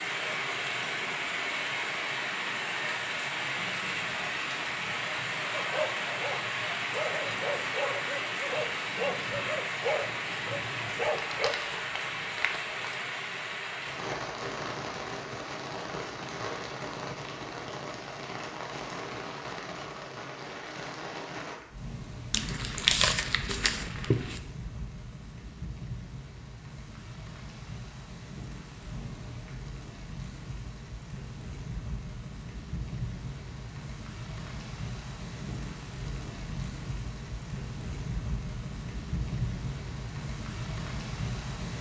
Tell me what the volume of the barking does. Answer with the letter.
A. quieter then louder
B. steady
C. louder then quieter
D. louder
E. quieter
D.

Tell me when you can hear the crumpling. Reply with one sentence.
You can hear the crumpling from 11.2 to 12.8 s and from 22.3 to 24.4 s.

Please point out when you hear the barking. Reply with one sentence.
The barking can be heard from 5.5 to 11.6 s.